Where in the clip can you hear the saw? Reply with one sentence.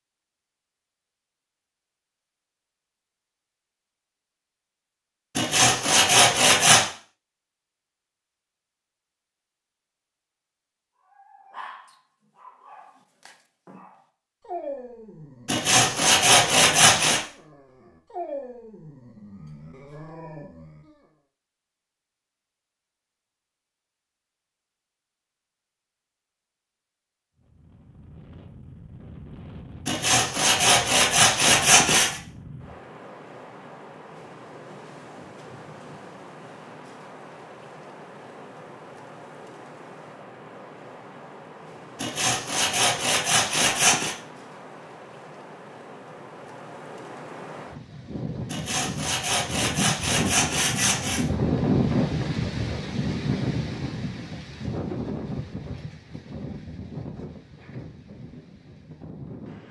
You can hear the saw from 5.3 to 6.8 s, from 15.4 to 17.2 s, from 29.9 to 32.2 s, from 42.0 to 44.1 s and from 48.5 to 51.2 s.